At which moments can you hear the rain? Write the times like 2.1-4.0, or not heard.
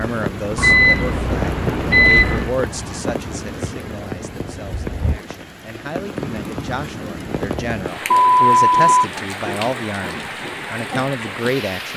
0.0-11.9.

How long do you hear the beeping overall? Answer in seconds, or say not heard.
3 s.